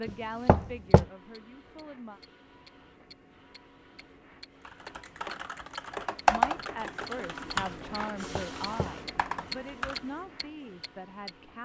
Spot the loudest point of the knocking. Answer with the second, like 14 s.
1 s.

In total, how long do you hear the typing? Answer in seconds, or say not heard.
5 s.